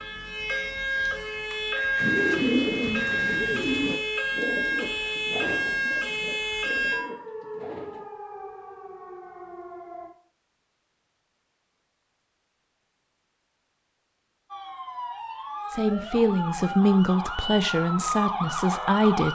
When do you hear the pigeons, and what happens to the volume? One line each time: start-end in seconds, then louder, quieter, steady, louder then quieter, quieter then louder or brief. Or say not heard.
2.0-8.1 quieter.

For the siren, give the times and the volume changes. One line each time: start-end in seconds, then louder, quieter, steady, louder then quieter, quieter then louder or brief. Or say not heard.
0.0-10.1 quieter
14.5-19.3 louder.